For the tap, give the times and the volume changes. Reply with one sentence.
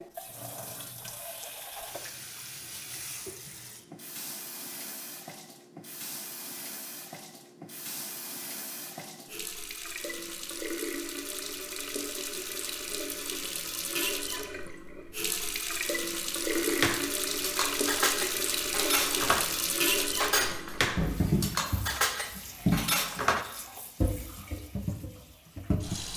The tap can be heard from 0.0 to 26.1 s, getting louder.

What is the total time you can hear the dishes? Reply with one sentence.
The dishes can be heard for 7 seconds in total.